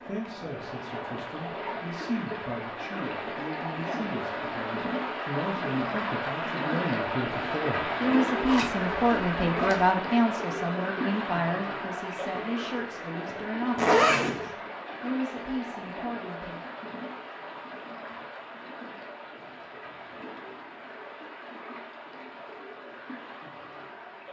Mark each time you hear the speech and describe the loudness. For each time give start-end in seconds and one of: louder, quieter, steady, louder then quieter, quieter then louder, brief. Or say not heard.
0.1-16.7 louder then quieter.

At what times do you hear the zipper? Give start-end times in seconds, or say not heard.
8.4-9.8, 13.8-14.4.